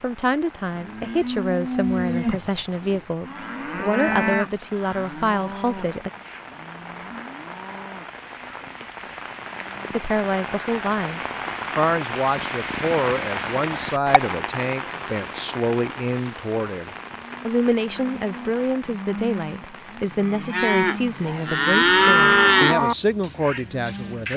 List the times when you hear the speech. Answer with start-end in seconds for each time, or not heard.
0.0-6.1, 9.9-24.3.